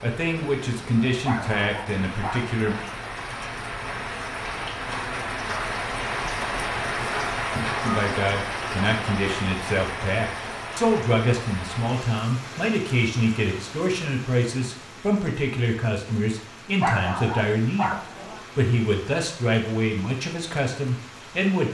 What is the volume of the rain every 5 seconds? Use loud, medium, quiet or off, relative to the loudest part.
medium, loud, medium, quiet, quiet.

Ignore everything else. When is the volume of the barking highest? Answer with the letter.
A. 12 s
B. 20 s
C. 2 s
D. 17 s
D.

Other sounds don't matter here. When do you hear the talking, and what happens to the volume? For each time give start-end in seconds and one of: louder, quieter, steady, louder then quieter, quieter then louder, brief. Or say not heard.
0.0-2.8 brief
7.8-21.6 steady.